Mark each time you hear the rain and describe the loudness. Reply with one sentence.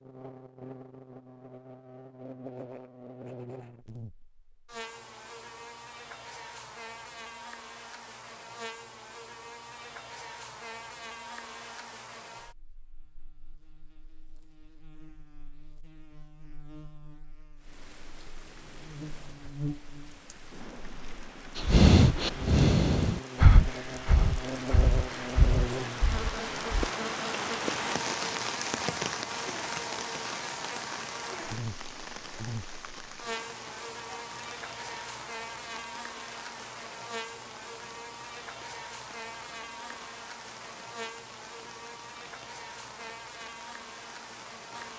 The rain can be heard from 17.6 to 44.9 s, getting louder then quieter.